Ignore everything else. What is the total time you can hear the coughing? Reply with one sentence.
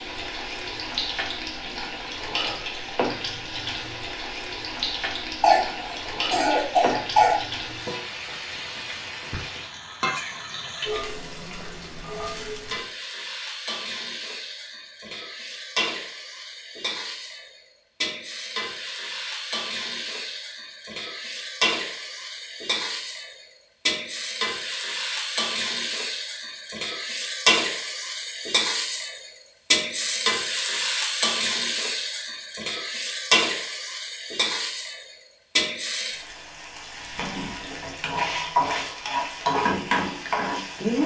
You can hear the coughing for 2 seconds altogether.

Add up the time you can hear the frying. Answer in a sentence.
You can hear the frying for 41 seconds altogether.